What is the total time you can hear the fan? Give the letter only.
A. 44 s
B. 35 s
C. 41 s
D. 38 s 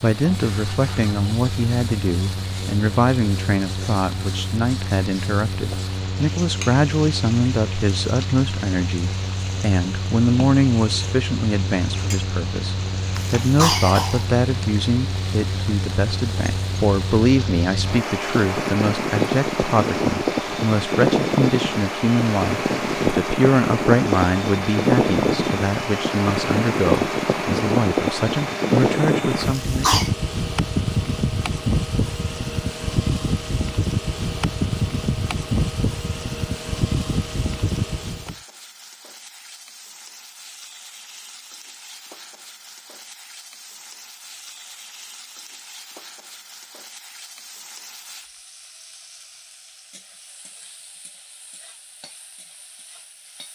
D.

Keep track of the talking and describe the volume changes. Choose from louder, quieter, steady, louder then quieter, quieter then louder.
steady.